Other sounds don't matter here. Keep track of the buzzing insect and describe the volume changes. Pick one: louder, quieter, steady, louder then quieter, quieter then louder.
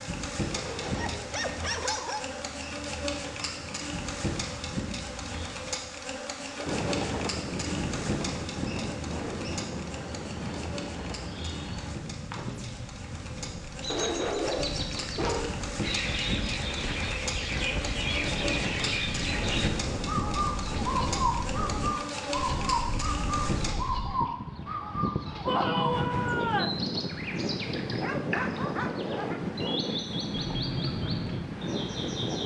quieter then louder.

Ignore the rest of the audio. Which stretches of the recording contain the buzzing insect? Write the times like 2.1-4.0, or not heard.
0.0-23.8.